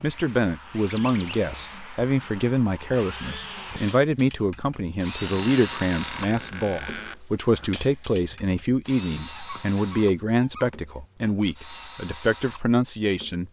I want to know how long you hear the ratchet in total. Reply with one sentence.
The ratchet can't be heard in this clip.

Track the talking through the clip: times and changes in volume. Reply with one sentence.
The talking can be heard from 0.0 to 13.4 s, at a steady volume.